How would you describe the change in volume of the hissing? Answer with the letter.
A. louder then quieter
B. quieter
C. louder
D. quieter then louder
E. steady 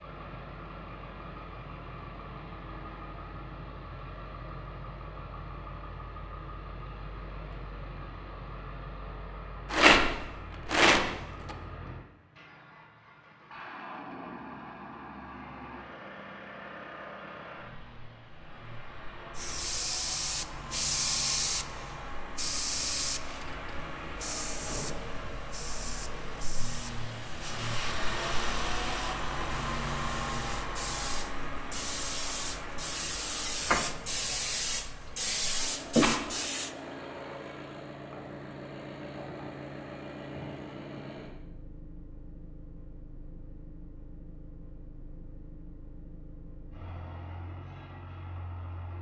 D.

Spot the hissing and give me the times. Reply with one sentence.
The hissing can be heard from 19.4 to 36.8 s.